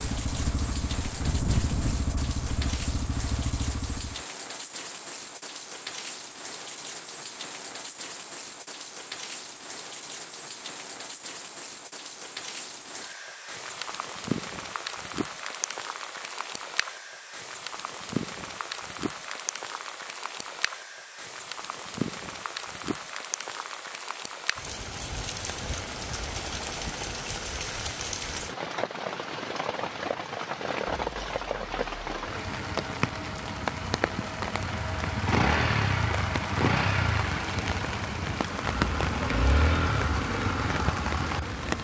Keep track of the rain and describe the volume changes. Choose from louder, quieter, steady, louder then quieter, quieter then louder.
louder.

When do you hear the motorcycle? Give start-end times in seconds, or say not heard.
0.0-4.2, 34.5-41.7.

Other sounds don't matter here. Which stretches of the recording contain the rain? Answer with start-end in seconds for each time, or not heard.
0.0-41.7.